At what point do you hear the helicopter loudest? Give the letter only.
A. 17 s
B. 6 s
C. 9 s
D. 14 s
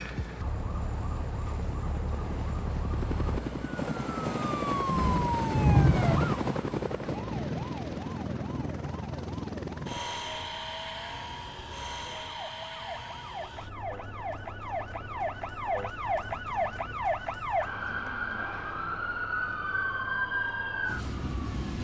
B.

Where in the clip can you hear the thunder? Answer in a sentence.
The thunder can be heard from 4.9 to 6.3 s.